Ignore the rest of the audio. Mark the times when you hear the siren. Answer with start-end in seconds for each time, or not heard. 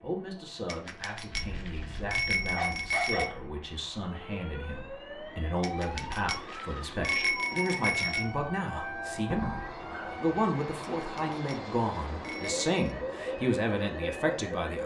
4.0-10.6, 12.3-14.8.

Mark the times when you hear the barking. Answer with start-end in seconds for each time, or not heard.
1.3-3.4, 8.7-10.1.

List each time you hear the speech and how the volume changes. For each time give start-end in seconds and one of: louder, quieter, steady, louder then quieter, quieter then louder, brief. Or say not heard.
0.0-14.8 louder.